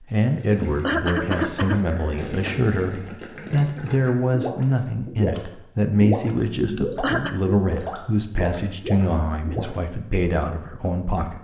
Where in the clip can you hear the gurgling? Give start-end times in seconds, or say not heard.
0.3-9.8.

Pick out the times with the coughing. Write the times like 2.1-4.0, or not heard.
0.6-2.5, 6.8-7.4.